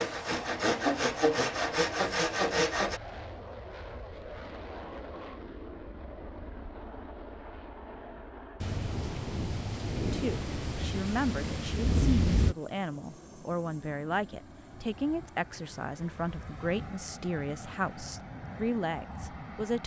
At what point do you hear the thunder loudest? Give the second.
12 s.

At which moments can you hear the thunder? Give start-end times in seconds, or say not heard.
8.6-12.6.